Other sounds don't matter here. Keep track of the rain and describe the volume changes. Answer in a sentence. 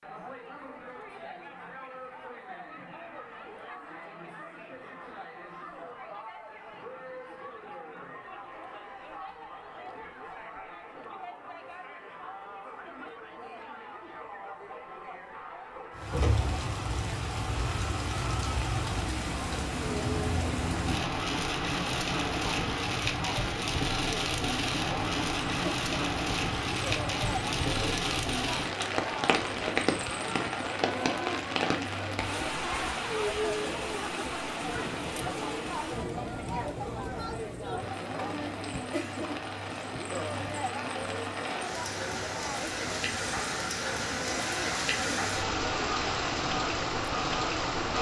The loudness of the rain goes down, then up.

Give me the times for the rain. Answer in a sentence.
You can hear the rain from 15.9 to 47.9 s.